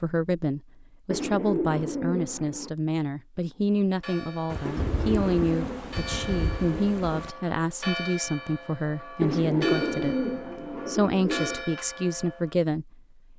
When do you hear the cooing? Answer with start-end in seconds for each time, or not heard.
1.1-2.7, 4.7-6.8, 9.2-11.7.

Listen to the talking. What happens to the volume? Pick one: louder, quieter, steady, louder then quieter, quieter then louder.
steady.